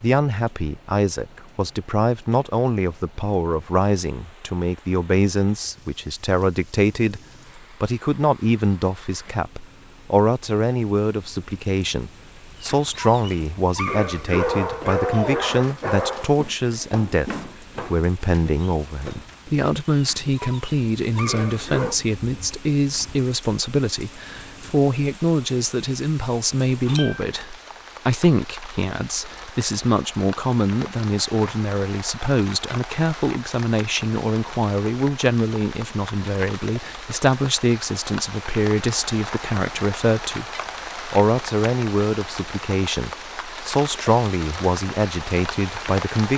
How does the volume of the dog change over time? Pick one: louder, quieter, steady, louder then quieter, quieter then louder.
quieter then louder.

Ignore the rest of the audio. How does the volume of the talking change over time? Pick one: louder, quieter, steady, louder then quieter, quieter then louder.
steady.